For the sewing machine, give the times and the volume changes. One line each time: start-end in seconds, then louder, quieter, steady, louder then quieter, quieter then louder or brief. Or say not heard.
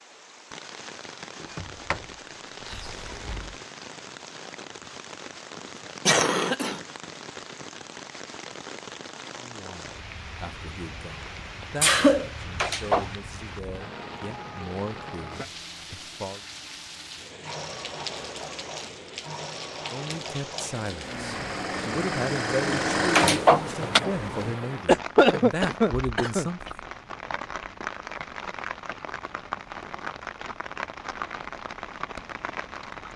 17.4-24.6 louder.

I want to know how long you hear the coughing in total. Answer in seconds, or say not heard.
3 s.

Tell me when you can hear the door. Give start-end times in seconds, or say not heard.
1.4-3.5, 12.6-13.2, 23.1-24.0.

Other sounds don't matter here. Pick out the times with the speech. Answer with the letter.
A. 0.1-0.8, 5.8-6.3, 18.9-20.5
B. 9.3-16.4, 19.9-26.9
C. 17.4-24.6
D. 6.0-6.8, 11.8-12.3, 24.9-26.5
B.